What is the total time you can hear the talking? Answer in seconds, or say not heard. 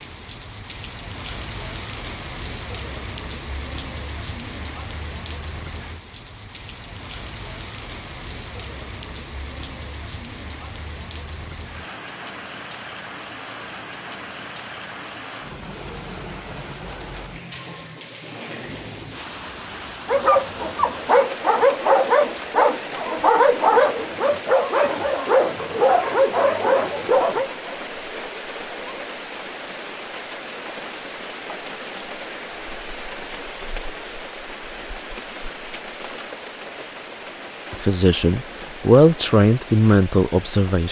3 s.